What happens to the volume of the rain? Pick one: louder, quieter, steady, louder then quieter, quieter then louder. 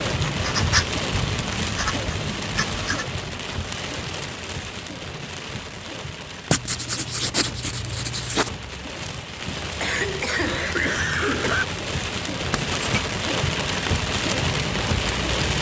quieter then louder.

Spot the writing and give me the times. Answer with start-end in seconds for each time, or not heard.
0.1-3.1, 6.5-8.5, 12.5-13.0.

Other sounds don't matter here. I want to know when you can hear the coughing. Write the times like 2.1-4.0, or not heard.
9.8-11.7.